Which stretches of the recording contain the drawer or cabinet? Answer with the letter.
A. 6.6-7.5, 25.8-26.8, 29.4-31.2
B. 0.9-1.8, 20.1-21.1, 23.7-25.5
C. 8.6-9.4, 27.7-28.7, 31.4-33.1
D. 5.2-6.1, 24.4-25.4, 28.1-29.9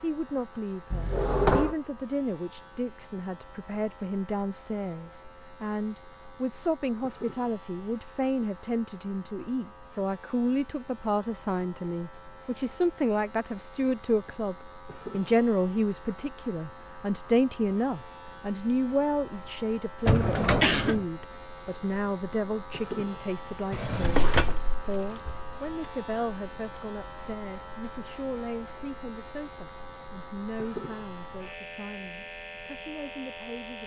B.